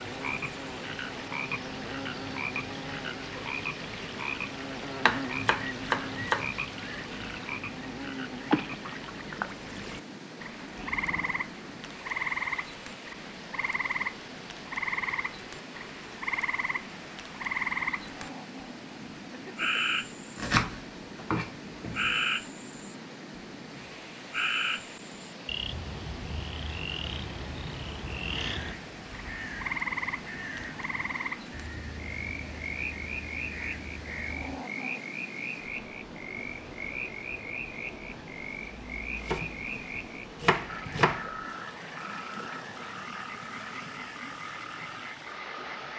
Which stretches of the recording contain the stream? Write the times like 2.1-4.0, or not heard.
0.0-45.9.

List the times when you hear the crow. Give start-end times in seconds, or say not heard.
28.4-34.5.